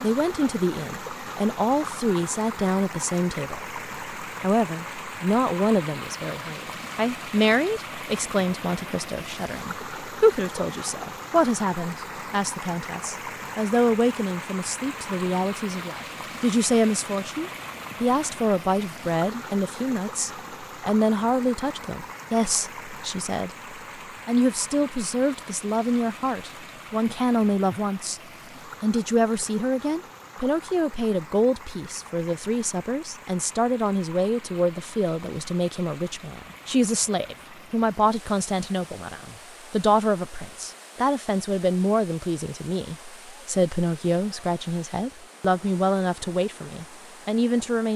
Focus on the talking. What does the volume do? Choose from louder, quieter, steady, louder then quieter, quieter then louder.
steady.